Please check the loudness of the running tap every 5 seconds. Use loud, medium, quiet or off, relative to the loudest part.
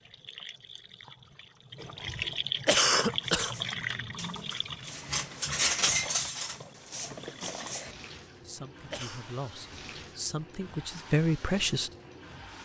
loud, medium, medium.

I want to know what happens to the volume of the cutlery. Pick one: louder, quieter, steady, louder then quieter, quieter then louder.
louder then quieter.